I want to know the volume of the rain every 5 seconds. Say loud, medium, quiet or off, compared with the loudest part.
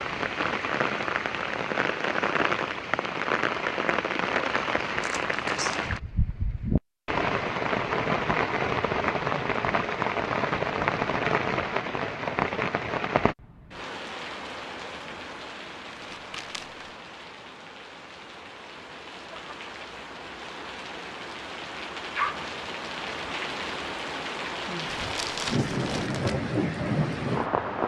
loud, loud, loud, quiet, medium, loud.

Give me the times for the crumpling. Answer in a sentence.
You can hear the crumpling from 5.0 to 6.0 s, from 15.9 to 16.9 s and from 24.9 to 26.4 s.